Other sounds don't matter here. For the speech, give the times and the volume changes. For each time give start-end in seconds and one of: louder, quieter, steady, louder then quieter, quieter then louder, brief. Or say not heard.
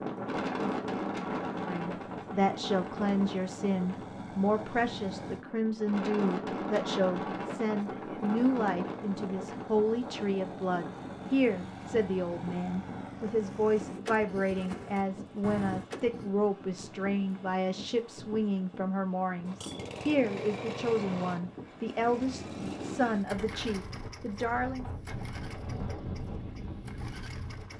1.6-24.9 steady.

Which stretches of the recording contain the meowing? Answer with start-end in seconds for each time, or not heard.
not heard.